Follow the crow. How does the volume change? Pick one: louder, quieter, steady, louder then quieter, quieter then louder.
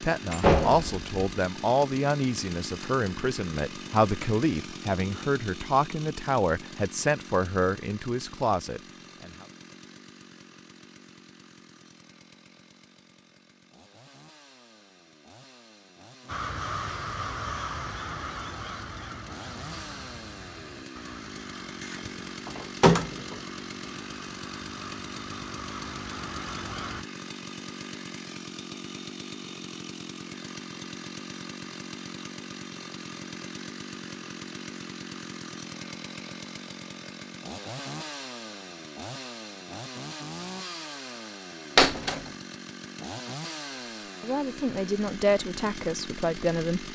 quieter then louder.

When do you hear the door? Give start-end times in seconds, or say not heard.
0.3-1.1, 21.8-23.4, 41.8-42.2.